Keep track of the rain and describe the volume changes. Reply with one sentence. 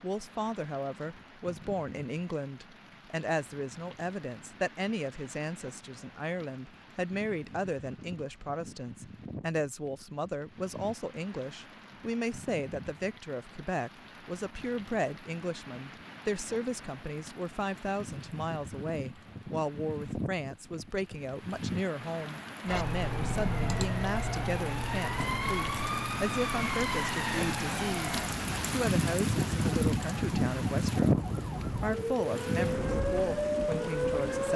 The loudness of the rain goes up.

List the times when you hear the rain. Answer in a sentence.
The rain can be heard from 0.0 to 34.5 s.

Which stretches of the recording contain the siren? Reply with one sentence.
You can hear the siren from 22.6 to 34.5 s.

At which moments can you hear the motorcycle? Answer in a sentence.
The motorcycle can't be heard in this clip.